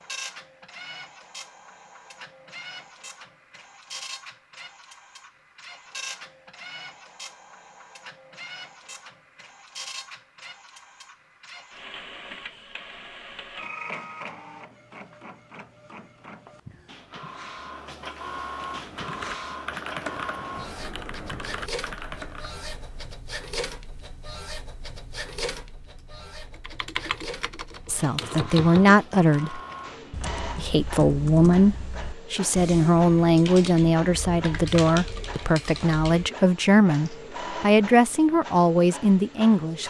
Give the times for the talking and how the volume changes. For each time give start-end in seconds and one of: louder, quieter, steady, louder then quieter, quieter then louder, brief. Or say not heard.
27.9-29.6 brief
30.6-39.8 steady.